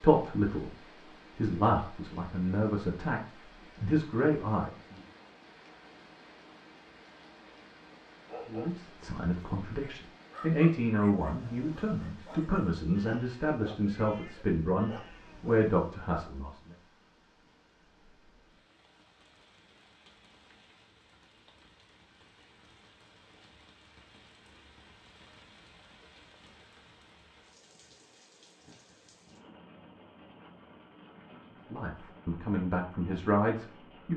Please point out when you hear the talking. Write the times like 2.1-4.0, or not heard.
0.0-0.7, 1.4-3.2, 3.8-5.0, 8.4-16.6, 31.7-34.1.